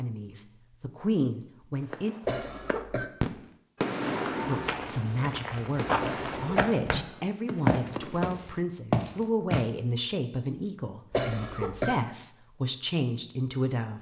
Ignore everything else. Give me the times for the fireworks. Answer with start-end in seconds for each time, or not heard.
1.9-8.3.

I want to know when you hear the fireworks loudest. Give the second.
4 s.